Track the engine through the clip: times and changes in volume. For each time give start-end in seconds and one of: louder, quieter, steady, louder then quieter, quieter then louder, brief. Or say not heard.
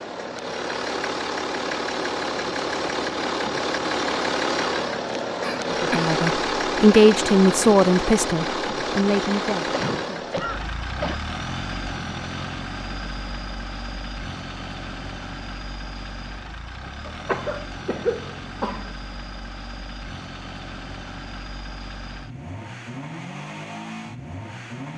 0.0-24.9 quieter.